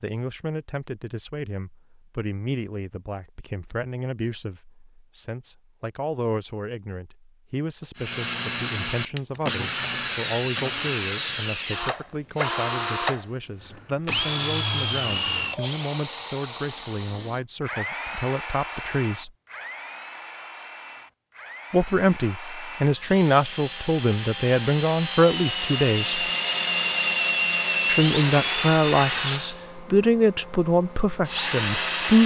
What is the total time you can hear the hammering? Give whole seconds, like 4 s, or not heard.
not heard.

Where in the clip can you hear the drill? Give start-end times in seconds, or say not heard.
8.0-32.2.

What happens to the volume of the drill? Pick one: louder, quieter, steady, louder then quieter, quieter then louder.
quieter then louder.